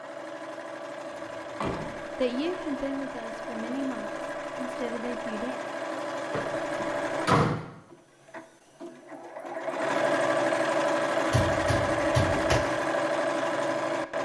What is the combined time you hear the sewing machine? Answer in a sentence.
The sewing machine can be heard for 14 seconds in total.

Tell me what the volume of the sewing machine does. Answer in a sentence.
The loudness of the sewing machine goes up.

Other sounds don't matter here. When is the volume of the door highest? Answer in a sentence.
The volume of the door peaks at 7 seconds.